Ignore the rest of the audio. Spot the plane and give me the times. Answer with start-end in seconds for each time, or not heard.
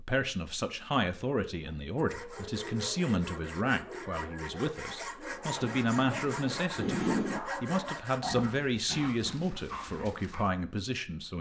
5.5-7.4.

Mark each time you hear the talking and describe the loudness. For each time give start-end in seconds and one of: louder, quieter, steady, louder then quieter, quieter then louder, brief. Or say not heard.
0.0-11.3 steady.